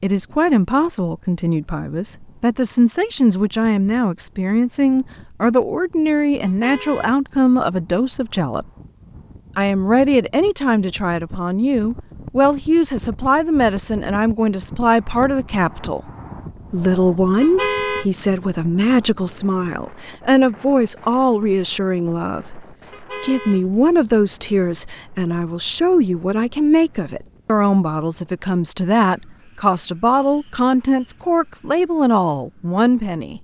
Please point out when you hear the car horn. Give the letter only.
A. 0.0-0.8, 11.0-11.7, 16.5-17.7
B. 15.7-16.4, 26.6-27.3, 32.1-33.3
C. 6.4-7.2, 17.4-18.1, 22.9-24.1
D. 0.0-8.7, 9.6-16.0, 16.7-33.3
C.